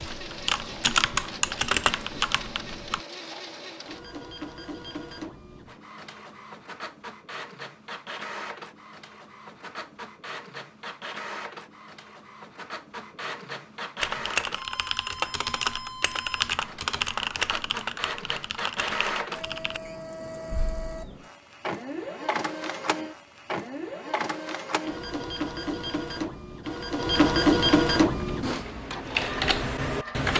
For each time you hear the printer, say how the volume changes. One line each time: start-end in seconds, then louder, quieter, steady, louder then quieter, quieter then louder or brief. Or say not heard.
0.0-30.3 louder.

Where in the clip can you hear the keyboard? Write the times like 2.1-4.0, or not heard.
0.0-3.0, 14.0-19.8, 28.1-30.3.